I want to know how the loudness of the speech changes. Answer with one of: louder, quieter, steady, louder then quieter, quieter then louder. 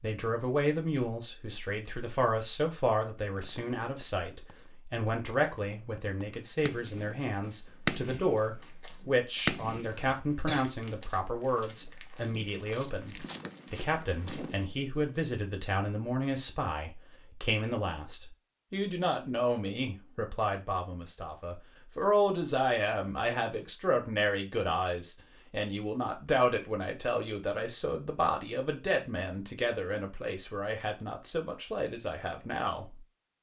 steady.